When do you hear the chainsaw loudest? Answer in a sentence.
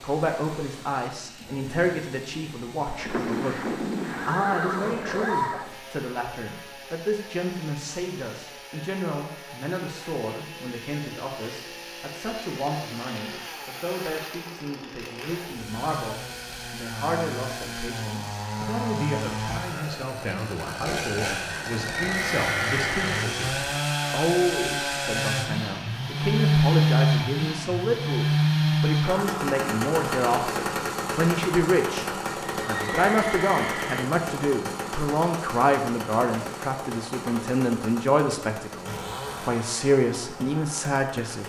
The loudest moment of the chainsaw is at 27 seconds.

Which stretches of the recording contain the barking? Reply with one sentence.
The barking can't be heard in this clip.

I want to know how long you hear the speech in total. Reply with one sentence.
You can hear the speech for 41 seconds altogether.